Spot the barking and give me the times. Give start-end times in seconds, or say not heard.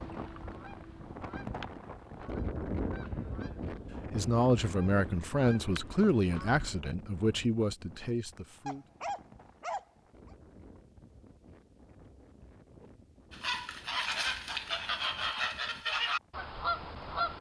8.7-10.3.